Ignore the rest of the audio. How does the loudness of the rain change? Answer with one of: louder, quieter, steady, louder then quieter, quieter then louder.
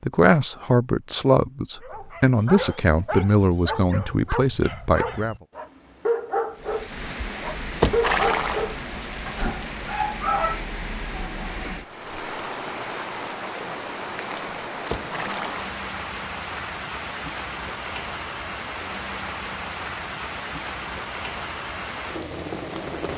steady.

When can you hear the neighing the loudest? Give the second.
8 s.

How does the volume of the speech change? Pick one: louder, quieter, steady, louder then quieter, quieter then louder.
steady.